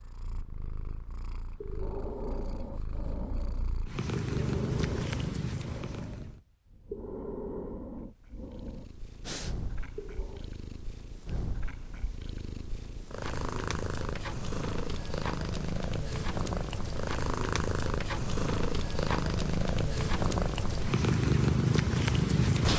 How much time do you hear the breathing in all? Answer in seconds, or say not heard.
9 s.